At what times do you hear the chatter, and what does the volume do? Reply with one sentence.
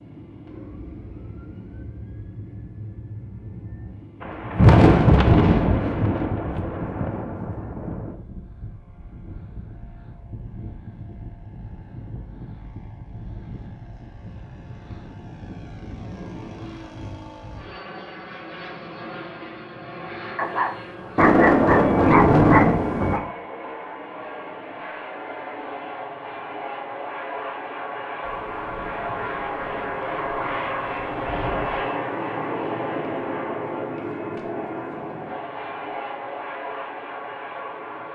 The chatter can't be heard in this clip.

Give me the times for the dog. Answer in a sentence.
You can hear the dog from 20.4 to 23.2 s.